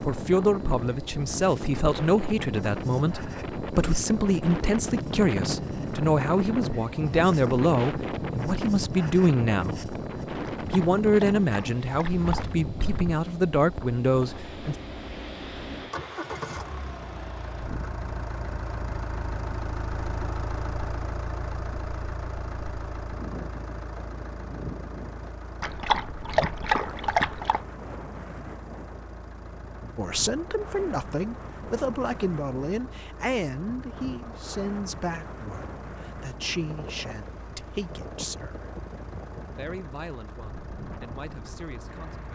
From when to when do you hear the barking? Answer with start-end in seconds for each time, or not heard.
10.4-12.4, 25.6-27.6.